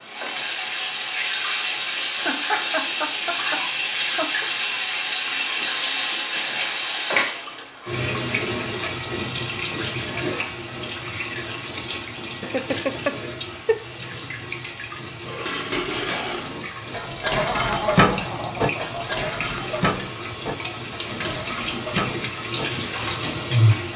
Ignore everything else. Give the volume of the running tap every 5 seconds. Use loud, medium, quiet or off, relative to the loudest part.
loud, loud, medium, medium, loud.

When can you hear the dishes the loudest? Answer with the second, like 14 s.
18 s.